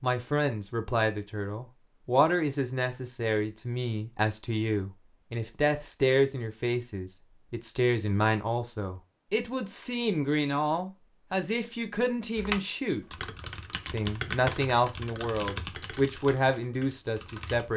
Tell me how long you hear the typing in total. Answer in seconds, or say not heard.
5 s.